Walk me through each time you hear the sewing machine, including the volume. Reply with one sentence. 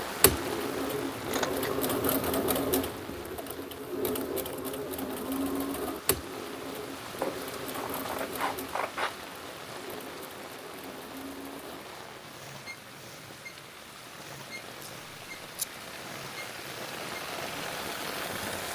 You can hear the sewing machine from 0.1 to 18.6 s, getting quieter.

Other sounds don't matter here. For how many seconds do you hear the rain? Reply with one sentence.
The rain can be heard for 19 seconds in total.